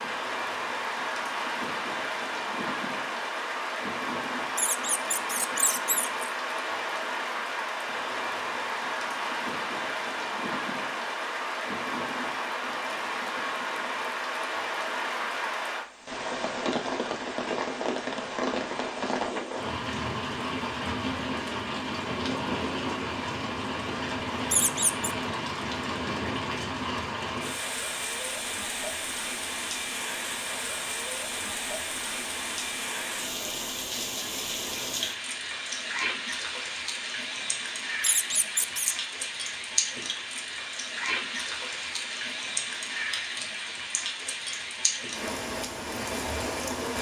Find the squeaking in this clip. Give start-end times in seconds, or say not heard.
4.5-6.2, 24.5-25.1, 38.0-38.9.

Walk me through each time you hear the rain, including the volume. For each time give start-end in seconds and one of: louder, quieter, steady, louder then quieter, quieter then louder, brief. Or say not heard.
0.0-46.9 steady.